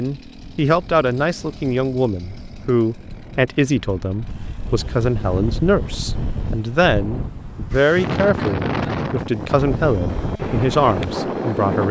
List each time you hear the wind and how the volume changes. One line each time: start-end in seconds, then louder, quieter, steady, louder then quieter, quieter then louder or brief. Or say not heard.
0.1-11.8 louder.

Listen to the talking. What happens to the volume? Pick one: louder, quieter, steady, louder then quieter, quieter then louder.
steady.